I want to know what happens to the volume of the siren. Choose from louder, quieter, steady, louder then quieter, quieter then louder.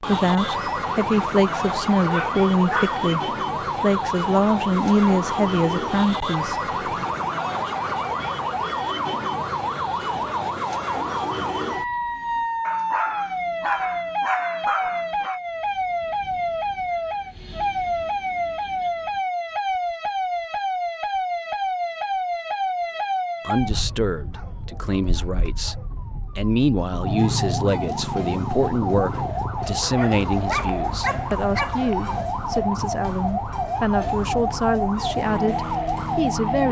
steady.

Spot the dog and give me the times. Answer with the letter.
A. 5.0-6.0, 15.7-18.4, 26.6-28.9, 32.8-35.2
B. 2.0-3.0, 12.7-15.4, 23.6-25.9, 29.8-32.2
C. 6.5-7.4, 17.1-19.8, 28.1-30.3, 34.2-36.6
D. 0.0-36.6
B.